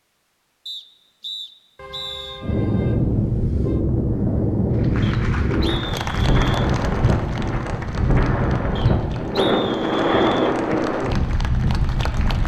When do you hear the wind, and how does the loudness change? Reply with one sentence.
The wind can be heard from 2.4 to 12.4 s, at a steady volume.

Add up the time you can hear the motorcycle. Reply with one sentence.
The motorcycle can't be heard in this clip.